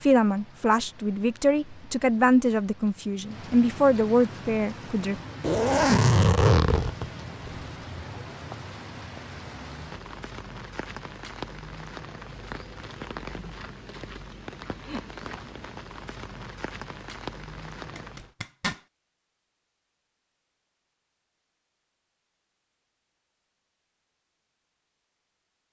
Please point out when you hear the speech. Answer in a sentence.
You can hear the speech from 0.0 to 5.2 s.